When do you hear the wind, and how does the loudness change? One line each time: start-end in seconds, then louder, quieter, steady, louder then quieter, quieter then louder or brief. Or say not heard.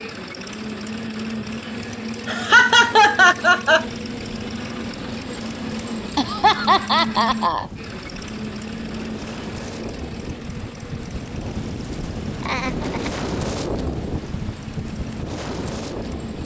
3.8-16.4 louder.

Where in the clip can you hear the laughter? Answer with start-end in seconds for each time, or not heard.
2.2-3.9, 6.2-7.7, 12.4-13.2.